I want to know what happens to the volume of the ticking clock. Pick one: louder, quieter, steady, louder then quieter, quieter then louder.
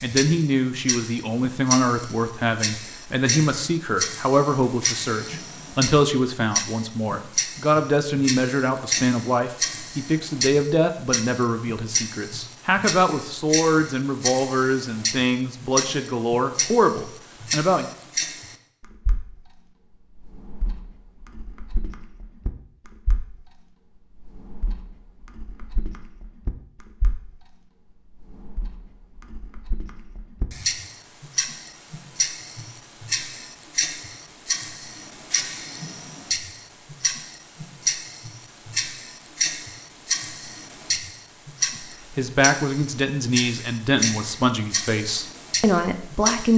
quieter then louder.